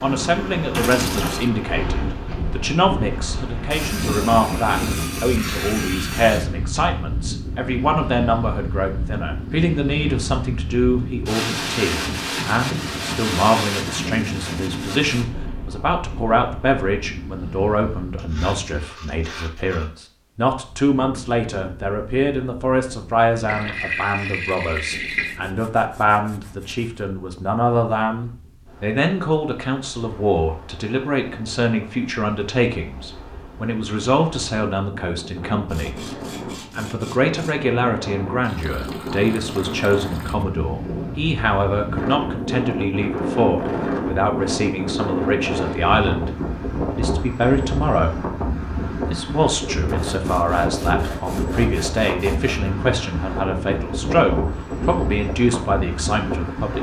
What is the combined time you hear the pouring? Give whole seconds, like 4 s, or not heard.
5 s.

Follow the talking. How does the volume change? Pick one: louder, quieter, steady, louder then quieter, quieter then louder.
steady.